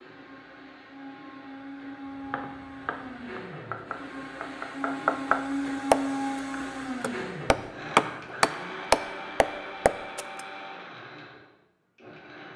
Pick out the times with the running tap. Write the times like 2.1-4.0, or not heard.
not heard.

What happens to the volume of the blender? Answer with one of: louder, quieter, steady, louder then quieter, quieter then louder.
louder then quieter.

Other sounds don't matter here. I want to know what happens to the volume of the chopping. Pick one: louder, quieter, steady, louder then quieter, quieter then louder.
louder.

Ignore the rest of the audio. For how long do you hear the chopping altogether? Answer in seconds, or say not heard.
8 s.